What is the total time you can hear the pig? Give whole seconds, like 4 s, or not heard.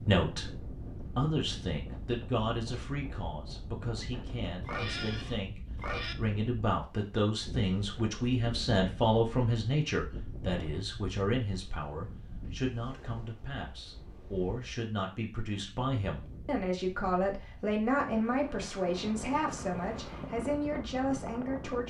2 s.